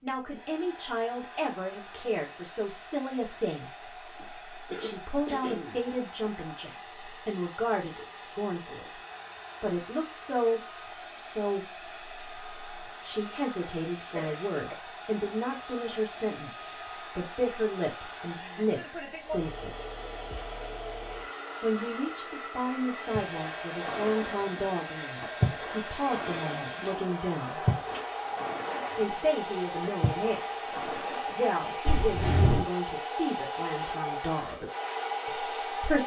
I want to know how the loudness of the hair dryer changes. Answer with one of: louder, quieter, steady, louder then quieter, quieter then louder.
louder.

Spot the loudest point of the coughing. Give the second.
32 s.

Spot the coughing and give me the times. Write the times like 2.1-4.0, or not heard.
4.2-6.3, 14.2-14.8, 31.9-32.6.